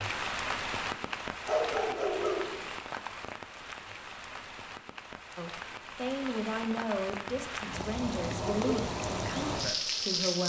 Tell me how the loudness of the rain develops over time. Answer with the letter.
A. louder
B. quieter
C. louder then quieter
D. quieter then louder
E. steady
D.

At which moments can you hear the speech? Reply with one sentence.
The speech can be heard from 5.3 to 10.4 s.